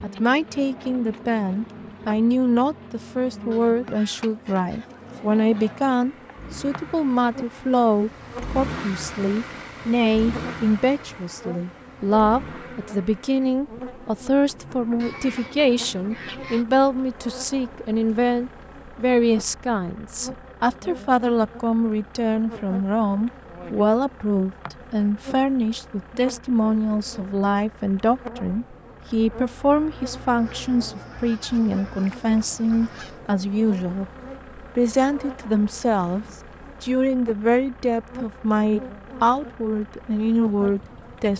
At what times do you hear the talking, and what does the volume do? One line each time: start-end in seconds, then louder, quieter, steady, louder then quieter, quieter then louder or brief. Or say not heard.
0.0-41.3 steady.